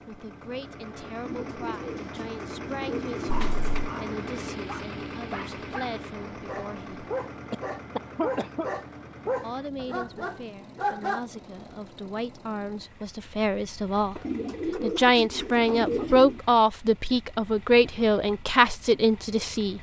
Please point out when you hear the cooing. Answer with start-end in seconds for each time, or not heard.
1.2-3.5, 14.2-16.4.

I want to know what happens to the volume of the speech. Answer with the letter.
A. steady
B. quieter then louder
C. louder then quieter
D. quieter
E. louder
E.